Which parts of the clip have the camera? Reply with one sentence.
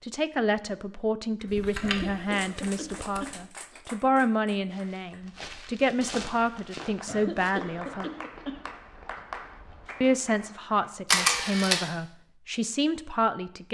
You can hear the camera from 1.4 to 3.4 s and from 11.1 to 11.8 s.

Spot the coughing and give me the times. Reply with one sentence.
You can hear the coughing from 1.8 to 3.8 s and from 7.0 to 8.7 s.